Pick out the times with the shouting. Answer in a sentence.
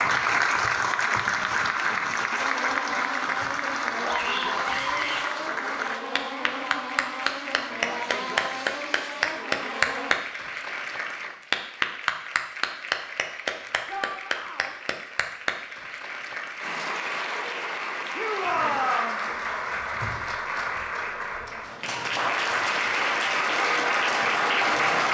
The shouting can be heard from 4.0 to 5.2 s, from 13.8 to 14.8 s and from 18.1 to 19.2 s.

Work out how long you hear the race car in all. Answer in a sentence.
The race car can be heard for 8 seconds in total.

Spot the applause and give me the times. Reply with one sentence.
The applause can be heard from 0.0 to 25.0 s.